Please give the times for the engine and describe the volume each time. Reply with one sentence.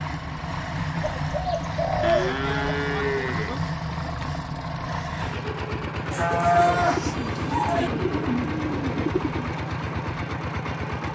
The engine can be heard from 0.0 to 11.0 s, at a steady volume.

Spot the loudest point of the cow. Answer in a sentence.
The volume of the cow peaks at 7 seconds.